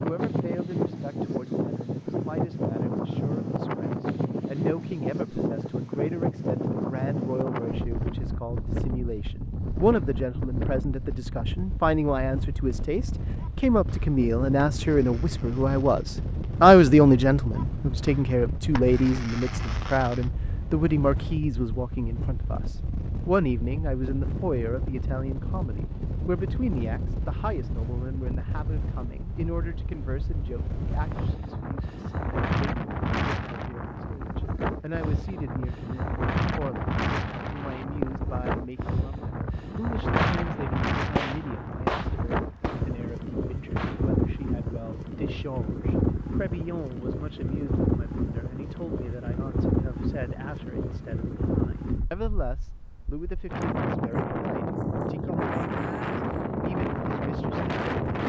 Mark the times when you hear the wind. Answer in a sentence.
You can hear the wind from 0.0 to 58.2 s.